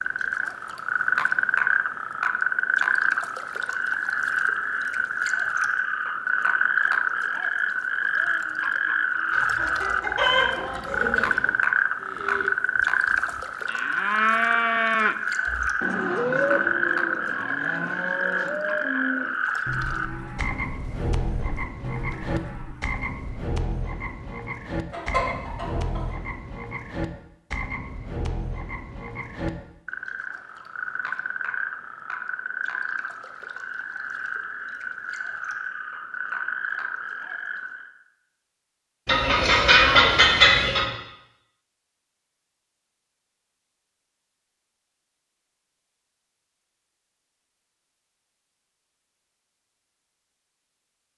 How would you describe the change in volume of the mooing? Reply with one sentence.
The loudness of the mooing goes down.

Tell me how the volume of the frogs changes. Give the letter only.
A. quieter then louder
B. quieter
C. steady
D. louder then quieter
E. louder
B.